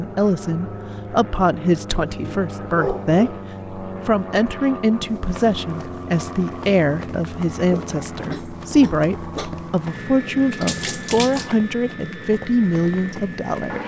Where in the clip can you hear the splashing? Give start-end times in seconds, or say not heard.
10.5-11.6.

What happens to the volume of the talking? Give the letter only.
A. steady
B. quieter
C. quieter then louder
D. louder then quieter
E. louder
A.